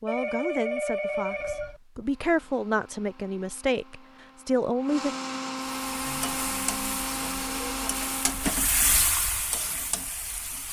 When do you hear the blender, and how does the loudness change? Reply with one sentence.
The blender can be heard from 2.0 to 8.7 s, getting louder.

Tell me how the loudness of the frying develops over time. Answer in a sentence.
The volume of the frying goes up, then down.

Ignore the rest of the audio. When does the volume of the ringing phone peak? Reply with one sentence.
The loudest moment of the ringing phone is at 1 second.